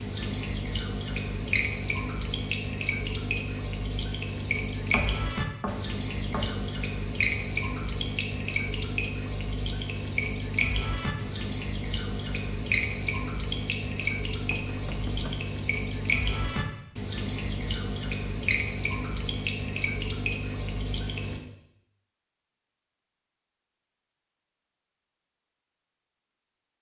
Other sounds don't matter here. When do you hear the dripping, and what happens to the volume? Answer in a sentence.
You can hear the dripping from 0.0 to 21.4 s, at a steady volume.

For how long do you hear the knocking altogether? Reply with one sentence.
The knocking can be heard for 3 seconds in total.